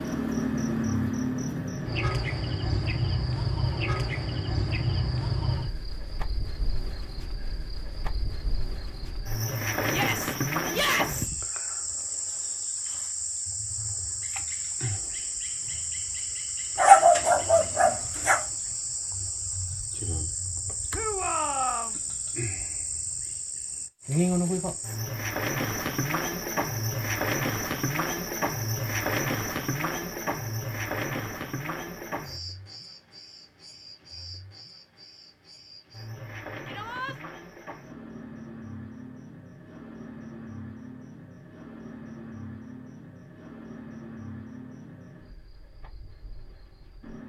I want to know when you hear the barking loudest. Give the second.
17 s.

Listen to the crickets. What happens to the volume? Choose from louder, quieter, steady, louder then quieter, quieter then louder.
quieter.